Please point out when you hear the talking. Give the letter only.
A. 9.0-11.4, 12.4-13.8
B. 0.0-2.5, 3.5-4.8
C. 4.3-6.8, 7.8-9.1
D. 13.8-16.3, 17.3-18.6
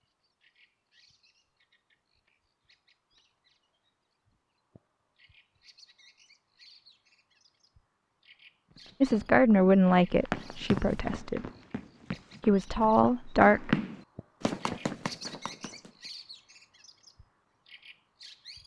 A.